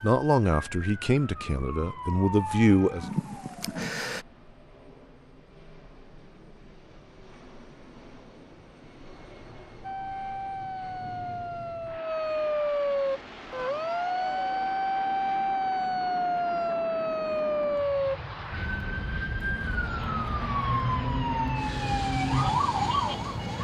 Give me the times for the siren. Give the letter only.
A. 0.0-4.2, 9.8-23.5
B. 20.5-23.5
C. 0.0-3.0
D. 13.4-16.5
A.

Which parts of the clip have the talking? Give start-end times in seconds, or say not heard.
0.0-3.0.